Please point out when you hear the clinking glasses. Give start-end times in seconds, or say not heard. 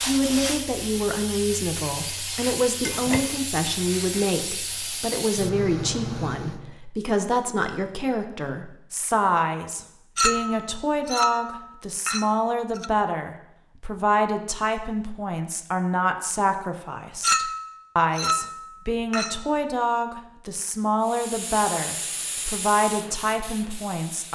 2.8-3.4, 10.2-12.9, 17.2-19.4.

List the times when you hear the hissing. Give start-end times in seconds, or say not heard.
0.0-6.8, 21.0-24.3.